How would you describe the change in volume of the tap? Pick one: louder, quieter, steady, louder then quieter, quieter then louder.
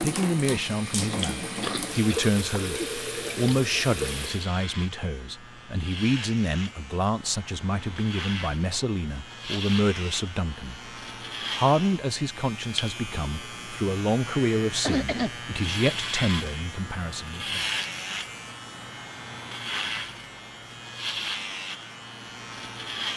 steady.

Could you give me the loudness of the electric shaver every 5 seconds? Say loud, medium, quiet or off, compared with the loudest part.
medium, medium, loud, loud, loud.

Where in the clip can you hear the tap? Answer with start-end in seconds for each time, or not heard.
0.0-4.5.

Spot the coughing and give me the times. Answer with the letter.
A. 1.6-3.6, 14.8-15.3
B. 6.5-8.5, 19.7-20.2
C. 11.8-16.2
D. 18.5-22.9
A.